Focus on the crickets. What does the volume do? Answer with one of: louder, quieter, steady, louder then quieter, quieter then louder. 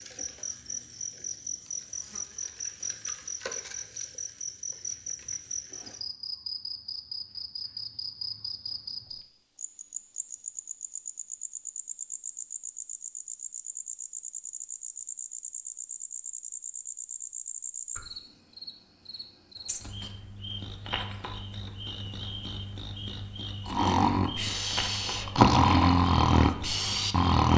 steady.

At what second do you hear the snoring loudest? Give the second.
26 s.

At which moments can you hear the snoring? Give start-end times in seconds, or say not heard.
23.6-27.5.